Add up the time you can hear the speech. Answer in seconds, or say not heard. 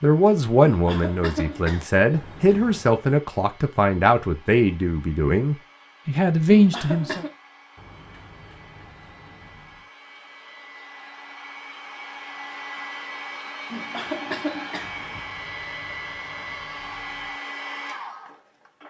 7 s.